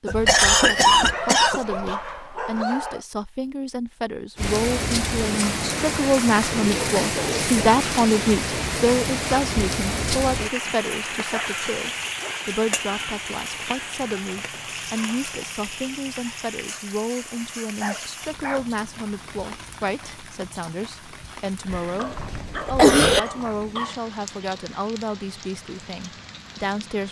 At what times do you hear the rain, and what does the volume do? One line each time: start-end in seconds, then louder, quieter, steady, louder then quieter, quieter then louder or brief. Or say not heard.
4.3-27.0 quieter.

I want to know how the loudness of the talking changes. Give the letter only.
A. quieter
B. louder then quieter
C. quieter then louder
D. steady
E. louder
B.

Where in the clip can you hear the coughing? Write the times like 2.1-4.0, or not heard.
0.1-1.6, 21.7-23.2.